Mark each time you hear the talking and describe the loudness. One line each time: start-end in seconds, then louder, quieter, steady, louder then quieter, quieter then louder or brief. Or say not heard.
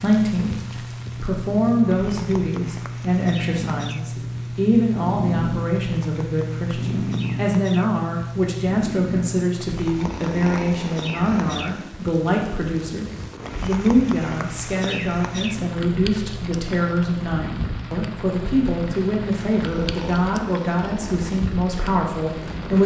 0.0-22.8 steady.